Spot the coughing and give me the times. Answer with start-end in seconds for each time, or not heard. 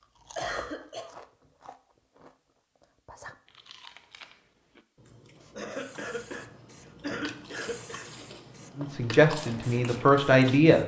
0.3-1.1, 5.5-8.2.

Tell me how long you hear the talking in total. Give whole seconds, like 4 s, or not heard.
2 s.